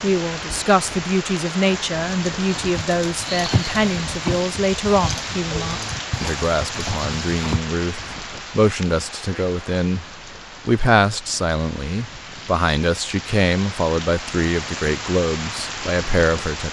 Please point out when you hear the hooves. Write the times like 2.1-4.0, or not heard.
2.6-7.6.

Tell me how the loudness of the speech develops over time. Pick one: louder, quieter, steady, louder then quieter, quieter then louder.
steady.